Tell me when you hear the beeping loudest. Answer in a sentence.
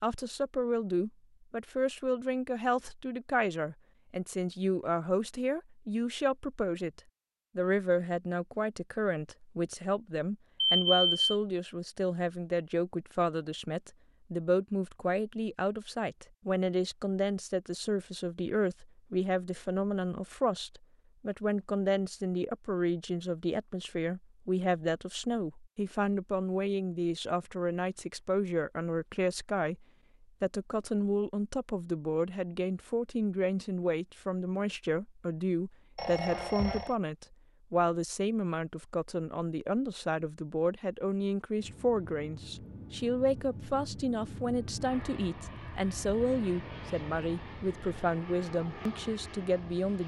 The volume of the beeping peaks at 11 seconds.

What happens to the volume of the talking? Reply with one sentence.
The volume of the talking stays about the same.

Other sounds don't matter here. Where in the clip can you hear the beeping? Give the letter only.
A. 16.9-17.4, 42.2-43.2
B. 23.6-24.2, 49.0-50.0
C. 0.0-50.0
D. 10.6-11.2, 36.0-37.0
D.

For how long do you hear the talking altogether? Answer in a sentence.
The talking can be heard for 50 seconds in total.